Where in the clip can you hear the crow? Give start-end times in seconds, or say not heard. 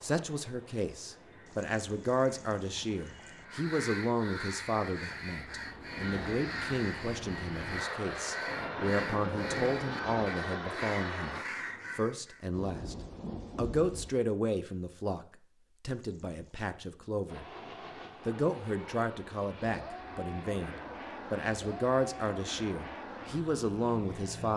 1.1-12.4.